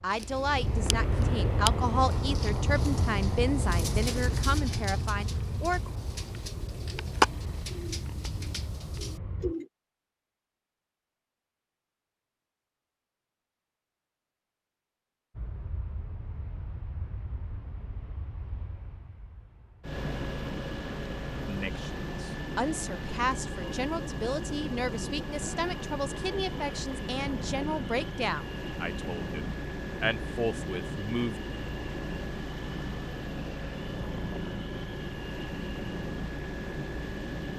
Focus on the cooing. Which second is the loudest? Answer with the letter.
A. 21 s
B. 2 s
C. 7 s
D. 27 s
C.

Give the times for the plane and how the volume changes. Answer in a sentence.
You can hear the plane from 0.0 to 9.6 s, getting quieter; and from 15.3 to 37.5 s, getting louder.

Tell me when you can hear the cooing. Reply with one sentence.
You can hear the cooing from 0.1 to 9.7 s.